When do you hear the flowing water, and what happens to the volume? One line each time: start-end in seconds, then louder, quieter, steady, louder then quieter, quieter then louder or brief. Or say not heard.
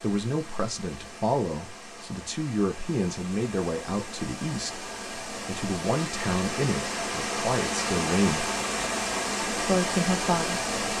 0.0-10.9 louder.